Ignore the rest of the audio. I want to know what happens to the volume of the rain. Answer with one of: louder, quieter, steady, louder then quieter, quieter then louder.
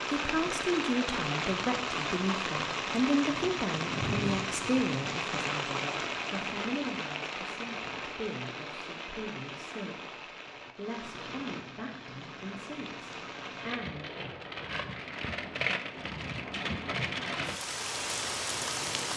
quieter then louder.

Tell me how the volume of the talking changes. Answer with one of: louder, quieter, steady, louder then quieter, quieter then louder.
quieter.